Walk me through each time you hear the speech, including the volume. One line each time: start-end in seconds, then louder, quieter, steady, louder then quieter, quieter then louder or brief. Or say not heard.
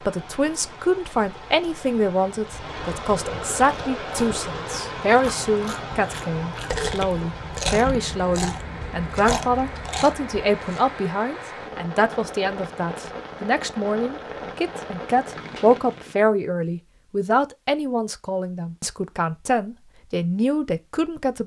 0.1-21.4 steady.